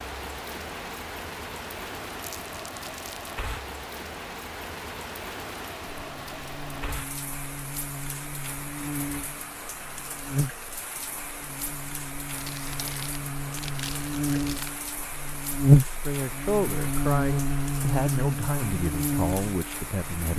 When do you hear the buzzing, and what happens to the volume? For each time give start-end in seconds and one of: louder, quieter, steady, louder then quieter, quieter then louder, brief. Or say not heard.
5.9-20.3 louder then quieter.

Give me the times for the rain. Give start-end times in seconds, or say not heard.
0.0-20.3.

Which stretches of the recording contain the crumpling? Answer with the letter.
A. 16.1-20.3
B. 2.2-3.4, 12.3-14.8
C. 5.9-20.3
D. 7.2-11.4
B.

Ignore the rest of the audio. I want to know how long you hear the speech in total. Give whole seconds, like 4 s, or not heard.
4 s.